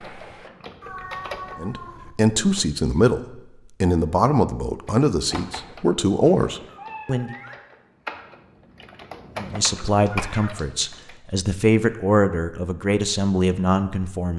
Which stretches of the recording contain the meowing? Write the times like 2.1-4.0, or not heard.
0.8-2.1, 6.7-7.6, 10.1-11.1.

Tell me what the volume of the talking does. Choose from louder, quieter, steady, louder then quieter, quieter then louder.
steady.